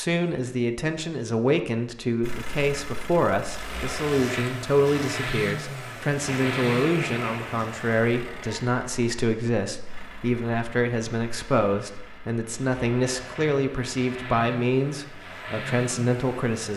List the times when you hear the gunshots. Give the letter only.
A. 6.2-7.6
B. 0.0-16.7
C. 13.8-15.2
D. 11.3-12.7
A.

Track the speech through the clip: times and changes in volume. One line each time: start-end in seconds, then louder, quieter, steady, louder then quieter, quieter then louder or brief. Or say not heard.
0.0-16.7 steady.